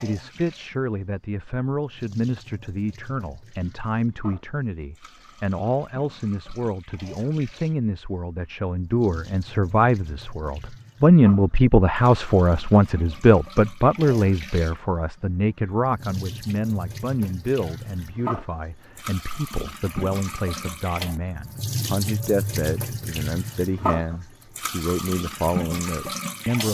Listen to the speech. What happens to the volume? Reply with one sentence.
The loudness of the speech goes up, then down.